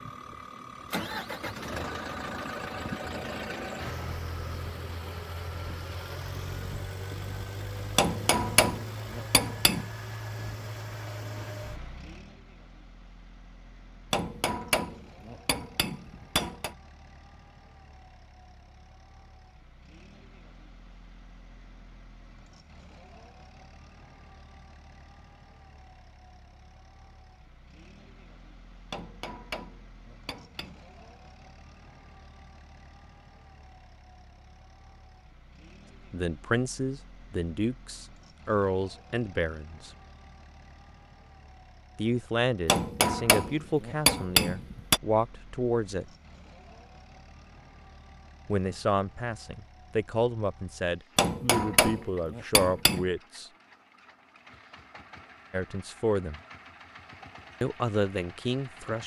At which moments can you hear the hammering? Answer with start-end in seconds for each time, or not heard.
8.0-9.8, 14.1-16.8, 28.9-30.8, 42.6-45.0, 51.1-53.0.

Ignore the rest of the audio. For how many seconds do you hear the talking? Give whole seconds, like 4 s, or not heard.
15 s.